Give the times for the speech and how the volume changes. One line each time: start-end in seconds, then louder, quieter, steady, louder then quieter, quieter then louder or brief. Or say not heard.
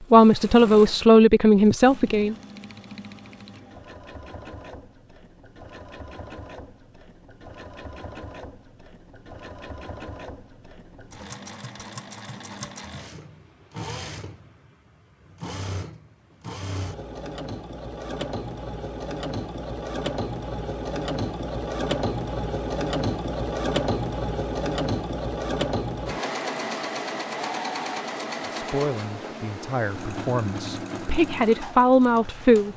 0.1-2.4 brief
28.4-32.7 louder.